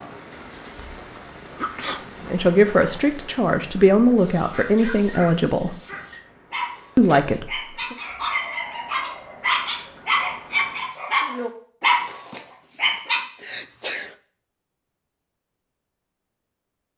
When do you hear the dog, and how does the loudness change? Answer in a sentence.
You can hear the dog from 4.2 to 13.2 s, getting louder.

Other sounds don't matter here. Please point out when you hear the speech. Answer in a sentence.
The speech can be heard from 2.2 to 5.8 s and from 7.0 to 8.0 s.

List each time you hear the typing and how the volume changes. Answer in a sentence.
You can't hear the typing here.